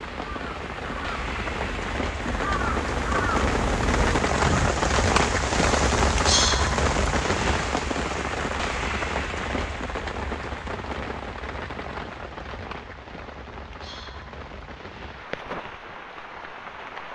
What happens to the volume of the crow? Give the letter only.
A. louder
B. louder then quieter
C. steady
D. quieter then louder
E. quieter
A.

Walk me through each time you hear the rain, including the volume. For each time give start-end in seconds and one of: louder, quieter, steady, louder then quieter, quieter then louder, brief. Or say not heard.
0.0-17.1 louder then quieter.